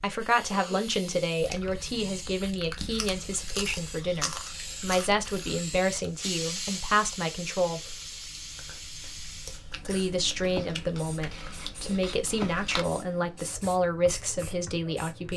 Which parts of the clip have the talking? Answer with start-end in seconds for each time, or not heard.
0.0-8.0, 9.8-15.3.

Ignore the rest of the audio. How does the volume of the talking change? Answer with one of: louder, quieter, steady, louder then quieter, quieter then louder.
steady.